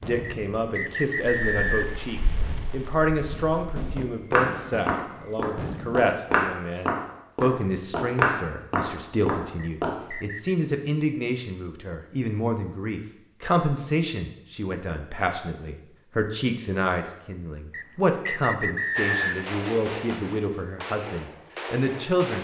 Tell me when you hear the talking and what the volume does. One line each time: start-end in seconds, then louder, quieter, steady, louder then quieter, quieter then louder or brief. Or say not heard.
0.0-22.3 steady.